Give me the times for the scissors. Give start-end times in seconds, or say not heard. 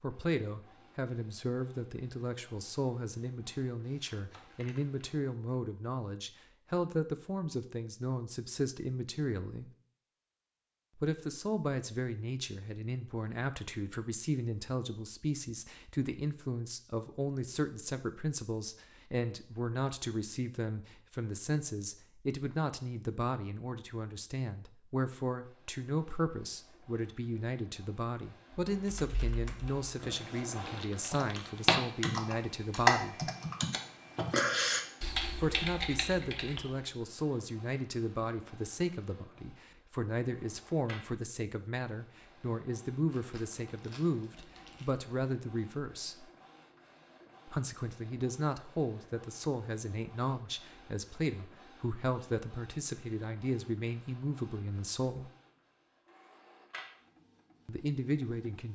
not heard.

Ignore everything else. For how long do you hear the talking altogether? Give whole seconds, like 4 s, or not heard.
52 s.